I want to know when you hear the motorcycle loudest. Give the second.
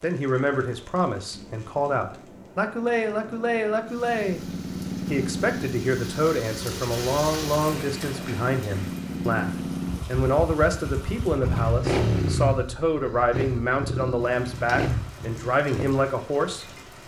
12 s.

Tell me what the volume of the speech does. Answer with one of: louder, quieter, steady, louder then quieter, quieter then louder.
steady.